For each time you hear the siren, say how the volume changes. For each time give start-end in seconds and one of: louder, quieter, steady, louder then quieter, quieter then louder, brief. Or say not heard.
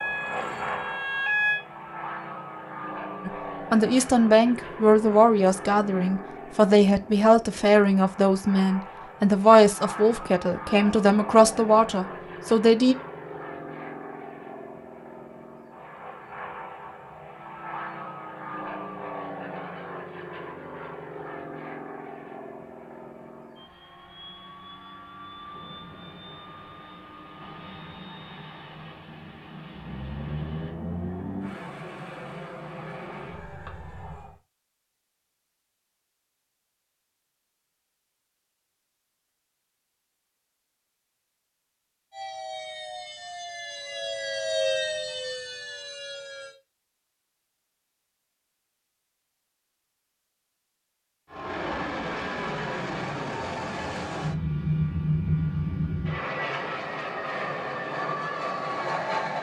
0.0-1.6 brief
42.1-46.5 louder then quieter.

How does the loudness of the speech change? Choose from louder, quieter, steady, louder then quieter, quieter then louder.
steady.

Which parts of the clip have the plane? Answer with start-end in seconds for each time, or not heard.
0.0-34.4, 51.3-59.3.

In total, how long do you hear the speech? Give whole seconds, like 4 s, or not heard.
10 s.